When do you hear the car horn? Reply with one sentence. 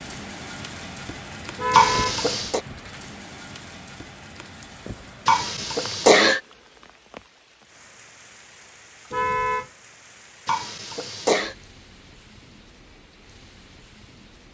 You can hear the car horn from 1.6 to 2.2 s and from 9.1 to 9.7 s.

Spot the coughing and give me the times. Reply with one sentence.
The coughing can be heard from 1.7 to 2.6 s, from 5.2 to 6.4 s and from 10.4 to 11.6 s.